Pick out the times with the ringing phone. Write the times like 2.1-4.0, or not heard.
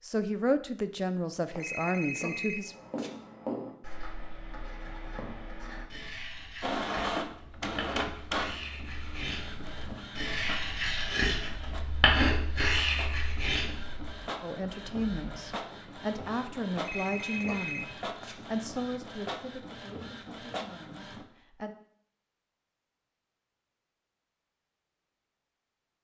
1.5-3.1, 16.8-18.4.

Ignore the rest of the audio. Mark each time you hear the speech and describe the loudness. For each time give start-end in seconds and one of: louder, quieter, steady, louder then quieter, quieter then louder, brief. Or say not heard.
0.0-2.8 brief
14.4-21.7 quieter.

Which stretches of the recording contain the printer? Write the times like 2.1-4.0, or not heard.
6.6-21.2.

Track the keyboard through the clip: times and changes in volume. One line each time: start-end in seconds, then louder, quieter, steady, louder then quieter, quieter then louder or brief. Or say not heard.
not heard.